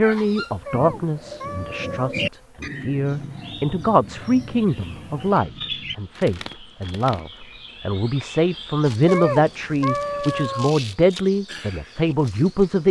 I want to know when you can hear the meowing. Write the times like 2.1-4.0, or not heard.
0.7-2.1, 9.1-10.8.